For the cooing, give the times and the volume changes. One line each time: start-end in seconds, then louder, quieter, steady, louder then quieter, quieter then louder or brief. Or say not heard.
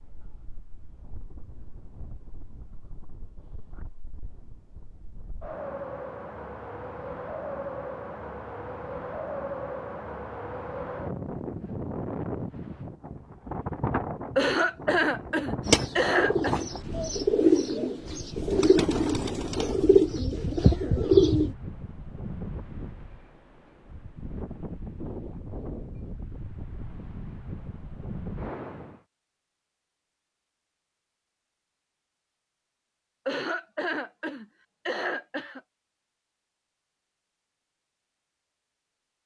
15.7-21.6 louder.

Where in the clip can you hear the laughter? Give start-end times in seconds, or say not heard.
14.3-16.6, 33.2-35.6.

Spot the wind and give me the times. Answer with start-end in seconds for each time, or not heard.
0.0-29.0.